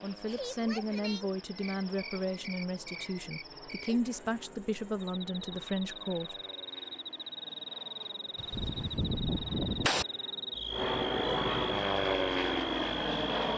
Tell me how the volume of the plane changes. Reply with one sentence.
The loudness of the plane goes up.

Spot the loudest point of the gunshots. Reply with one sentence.
The volume of the gunshots peaks at 10 seconds.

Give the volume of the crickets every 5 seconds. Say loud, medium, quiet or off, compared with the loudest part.
medium, loud, loud.